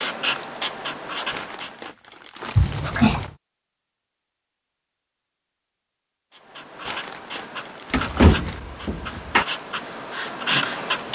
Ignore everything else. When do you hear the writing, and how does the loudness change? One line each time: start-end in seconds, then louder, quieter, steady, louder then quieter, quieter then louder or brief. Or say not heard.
0.0-1.9 brief
6.3-11.0 louder.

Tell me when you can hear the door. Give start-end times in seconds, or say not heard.
2.5-3.3, 7.9-9.4.